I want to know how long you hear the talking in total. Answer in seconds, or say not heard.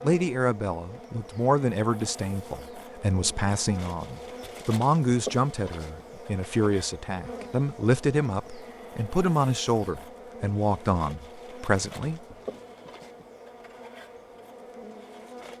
12 s.